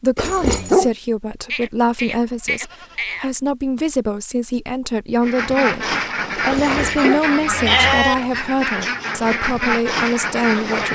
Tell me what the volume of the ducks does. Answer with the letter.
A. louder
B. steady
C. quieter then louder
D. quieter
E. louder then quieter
B.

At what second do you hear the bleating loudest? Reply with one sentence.
The loudest moment of the bleating is at 8 seconds.